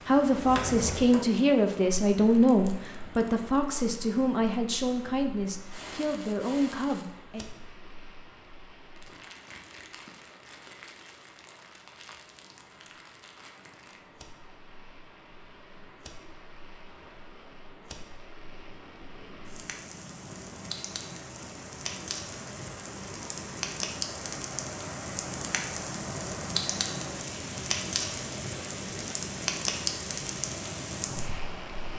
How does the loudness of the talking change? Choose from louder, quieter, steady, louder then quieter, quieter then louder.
quieter.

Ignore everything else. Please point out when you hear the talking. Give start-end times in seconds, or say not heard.
0.1-7.5.